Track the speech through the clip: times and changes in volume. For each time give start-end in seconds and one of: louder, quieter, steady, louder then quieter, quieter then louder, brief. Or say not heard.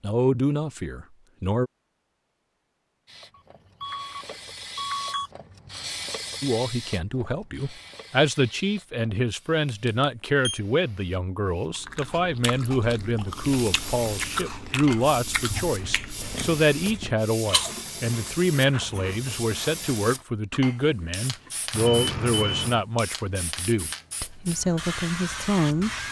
0.0-1.7 brief
6.4-25.9 steady.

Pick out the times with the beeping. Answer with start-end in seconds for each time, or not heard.
3.4-5.3, 9.7-10.6, 21.8-22.9.